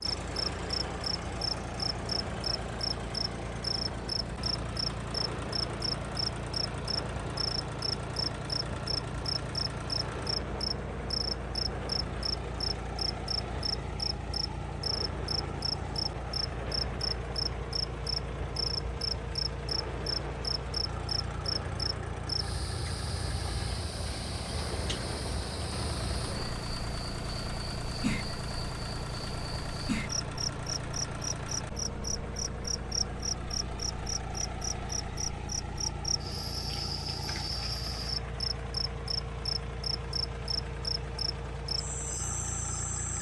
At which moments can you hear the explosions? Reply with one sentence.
The explosions can't be heard in this clip.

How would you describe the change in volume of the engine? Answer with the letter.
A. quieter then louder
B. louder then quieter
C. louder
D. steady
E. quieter
D.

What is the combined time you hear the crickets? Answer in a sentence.
You can hear the crickets for 43 seconds altogether.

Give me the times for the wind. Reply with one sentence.
The wind can be heard from 0.0 to 26.6 s.